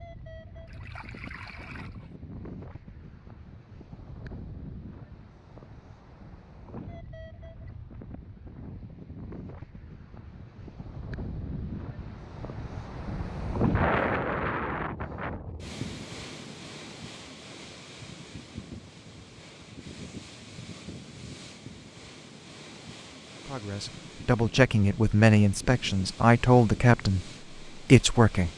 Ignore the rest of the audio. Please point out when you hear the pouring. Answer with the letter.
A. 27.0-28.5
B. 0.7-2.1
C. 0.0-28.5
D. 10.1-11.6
B.